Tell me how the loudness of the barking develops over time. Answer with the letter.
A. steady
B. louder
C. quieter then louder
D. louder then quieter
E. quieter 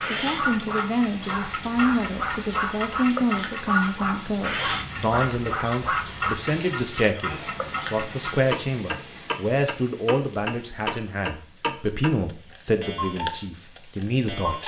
D.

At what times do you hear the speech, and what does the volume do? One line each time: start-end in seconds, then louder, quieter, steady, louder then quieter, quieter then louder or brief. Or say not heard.
0.1-14.6 steady.